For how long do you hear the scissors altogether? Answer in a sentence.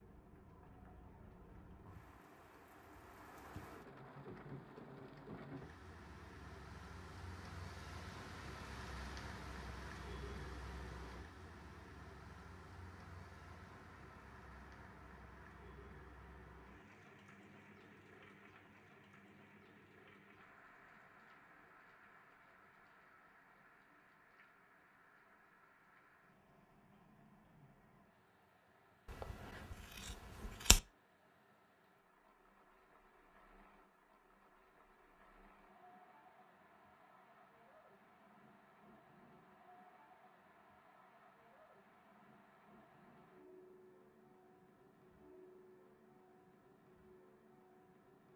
The scissors can be heard for 2 seconds in total.